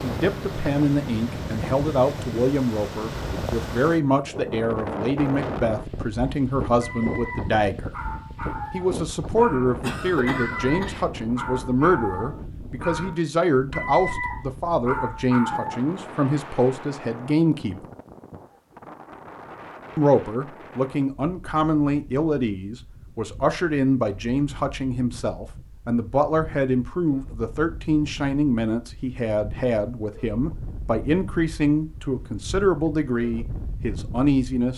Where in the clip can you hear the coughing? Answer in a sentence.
You can hear the coughing from 9.8 to 11.1 s.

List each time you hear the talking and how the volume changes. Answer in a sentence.
You can hear the talking from 0.0 to 7.9 s, at a steady volume; from 8.7 to 17.9 s, at a steady volume; and from 19.9 to 34.7 s, at a steady volume.